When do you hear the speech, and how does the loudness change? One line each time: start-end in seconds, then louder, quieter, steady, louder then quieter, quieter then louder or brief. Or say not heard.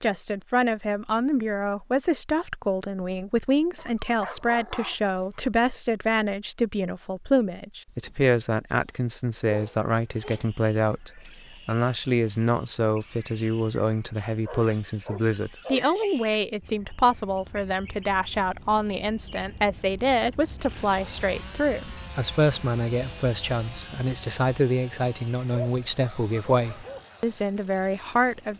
0.0-28.5 steady.